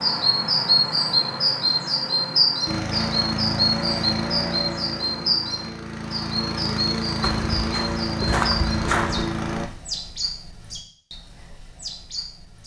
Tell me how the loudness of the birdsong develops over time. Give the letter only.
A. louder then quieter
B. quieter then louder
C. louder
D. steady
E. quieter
E.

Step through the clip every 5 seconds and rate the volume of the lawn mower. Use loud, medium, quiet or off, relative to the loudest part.
loud, loud, off.